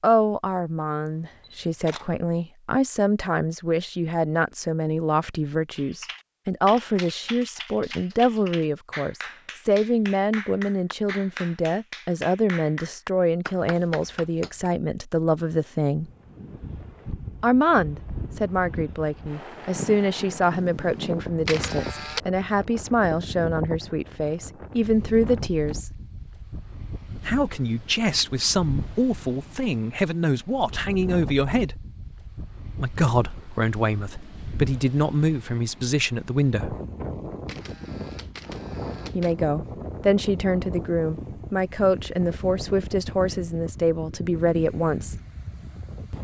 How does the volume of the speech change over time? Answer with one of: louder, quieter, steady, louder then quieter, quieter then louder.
steady.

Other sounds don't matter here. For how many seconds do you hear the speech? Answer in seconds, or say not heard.
39 s.